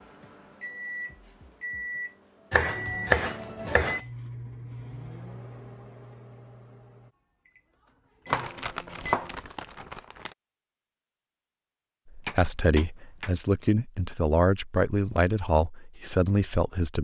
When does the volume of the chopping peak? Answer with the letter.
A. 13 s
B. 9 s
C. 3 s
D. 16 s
C.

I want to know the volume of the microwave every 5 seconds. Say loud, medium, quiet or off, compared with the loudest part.
loud, medium, off, off.